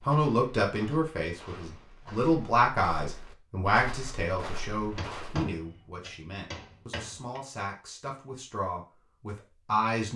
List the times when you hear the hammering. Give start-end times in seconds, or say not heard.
4.8-7.4.